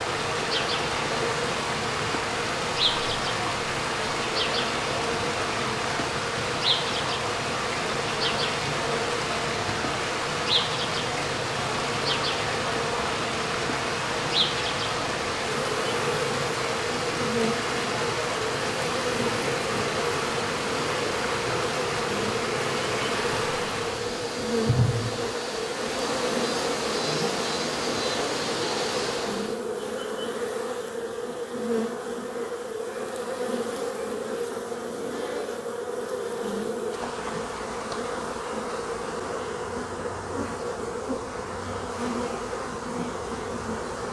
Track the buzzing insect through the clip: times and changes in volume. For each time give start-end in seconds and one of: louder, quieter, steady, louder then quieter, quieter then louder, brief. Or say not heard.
0.0-44.0 steady.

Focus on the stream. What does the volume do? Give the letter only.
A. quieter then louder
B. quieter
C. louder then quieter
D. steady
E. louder
D.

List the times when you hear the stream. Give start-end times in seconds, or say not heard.
0.0-29.6.